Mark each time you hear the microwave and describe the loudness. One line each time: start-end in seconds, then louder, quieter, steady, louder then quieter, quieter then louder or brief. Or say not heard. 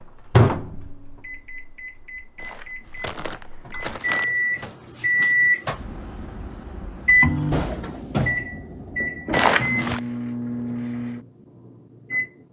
0.0-12.3 louder then quieter.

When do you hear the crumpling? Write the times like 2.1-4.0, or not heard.
2.4-4.2, 9.3-10.0.